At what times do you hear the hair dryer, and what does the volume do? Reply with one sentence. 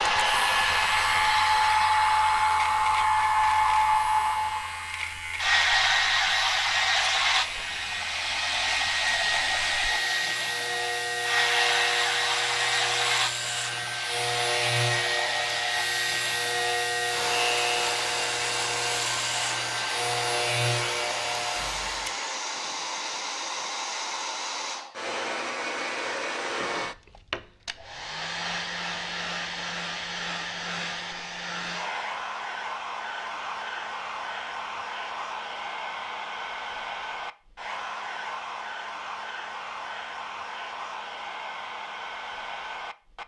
You can hear the hair dryer from 0.0 to 43.2 s, getting quieter.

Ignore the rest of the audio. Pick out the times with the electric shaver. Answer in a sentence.
You can hear the electric shaver from 0.0 to 22.1 s.